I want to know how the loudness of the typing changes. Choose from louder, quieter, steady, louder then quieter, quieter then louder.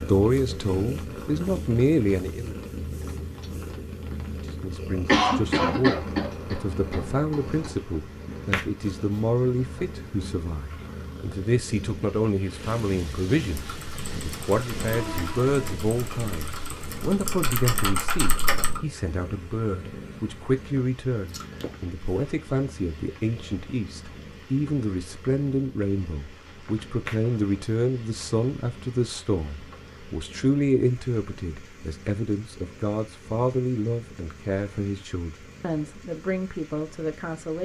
louder.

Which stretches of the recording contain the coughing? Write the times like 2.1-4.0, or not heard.
5.0-7.7.